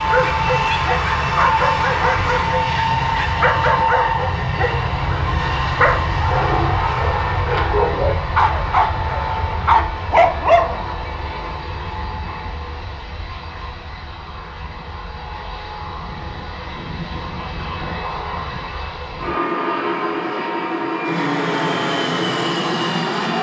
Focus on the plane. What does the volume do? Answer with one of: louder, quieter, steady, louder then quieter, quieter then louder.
quieter then louder.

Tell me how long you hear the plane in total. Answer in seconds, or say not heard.
23 s.